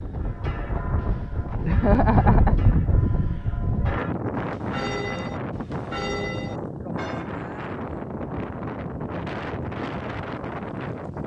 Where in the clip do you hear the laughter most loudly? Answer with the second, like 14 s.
2 s.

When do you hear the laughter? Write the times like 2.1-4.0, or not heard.
1.6-3.4.